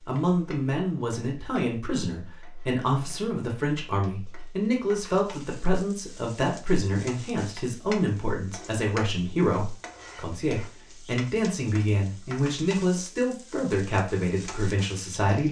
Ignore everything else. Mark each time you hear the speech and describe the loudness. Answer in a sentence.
The speech can be heard from 0.1 to 15.4 s, at a steady volume.